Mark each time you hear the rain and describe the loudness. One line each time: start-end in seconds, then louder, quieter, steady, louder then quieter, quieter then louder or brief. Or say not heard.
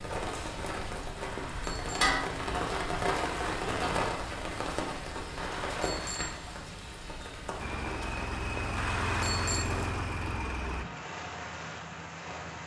0.0-12.6 quieter.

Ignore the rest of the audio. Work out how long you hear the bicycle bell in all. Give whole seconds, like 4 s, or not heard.
3 s.